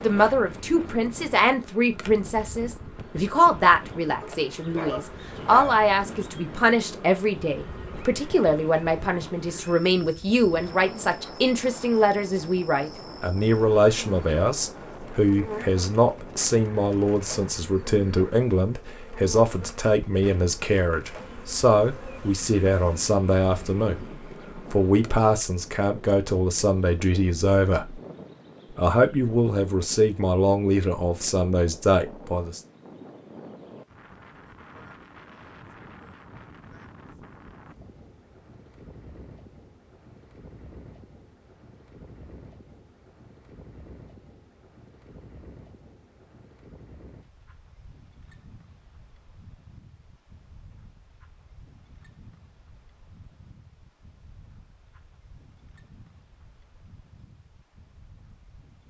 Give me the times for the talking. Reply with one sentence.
You can hear the talking from 0.0 to 28.0 s and from 28.8 to 32.6 s.